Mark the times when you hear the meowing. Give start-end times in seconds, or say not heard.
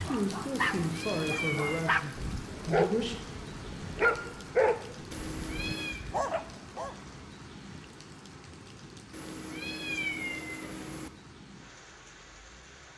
0.5-2.0, 5.1-6.0, 9.1-11.1.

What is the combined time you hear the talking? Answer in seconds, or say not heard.
3 s.